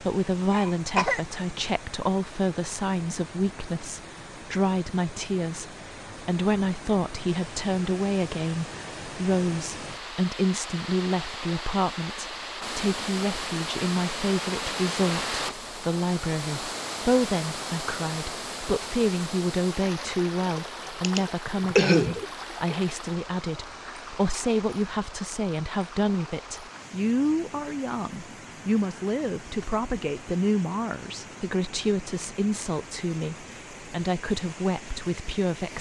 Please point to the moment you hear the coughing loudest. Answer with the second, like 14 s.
22 s.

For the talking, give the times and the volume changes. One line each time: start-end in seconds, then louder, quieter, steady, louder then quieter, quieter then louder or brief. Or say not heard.
0.0-35.7 steady.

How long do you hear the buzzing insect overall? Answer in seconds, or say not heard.
not heard.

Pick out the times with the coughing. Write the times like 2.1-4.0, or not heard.
0.5-1.2, 21.0-22.8.